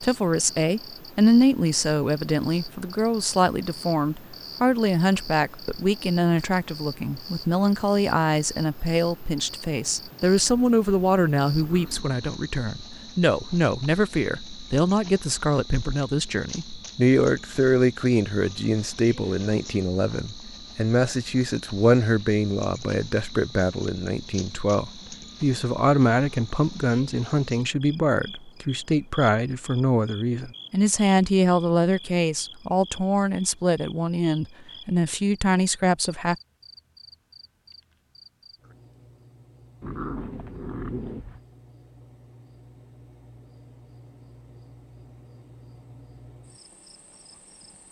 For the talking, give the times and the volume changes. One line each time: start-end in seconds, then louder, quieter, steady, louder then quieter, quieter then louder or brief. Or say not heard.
0.0-36.4 steady.